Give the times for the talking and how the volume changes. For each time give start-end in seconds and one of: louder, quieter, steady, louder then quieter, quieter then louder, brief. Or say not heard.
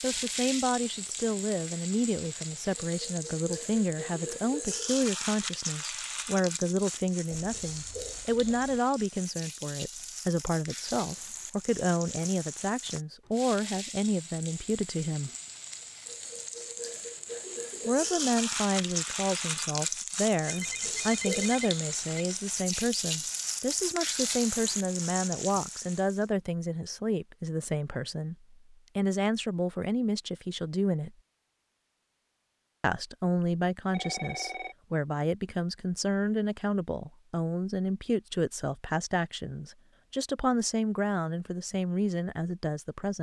0.0-15.3 steady
17.9-31.1 steady
32.8-43.1 steady.